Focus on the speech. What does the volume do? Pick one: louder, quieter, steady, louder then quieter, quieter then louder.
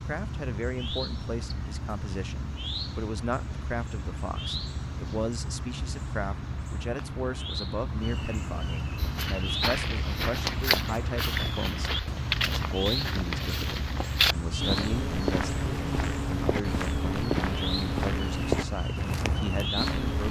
steady.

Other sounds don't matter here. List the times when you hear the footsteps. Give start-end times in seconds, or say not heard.
8.9-20.2.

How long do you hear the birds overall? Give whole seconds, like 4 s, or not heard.
20 s.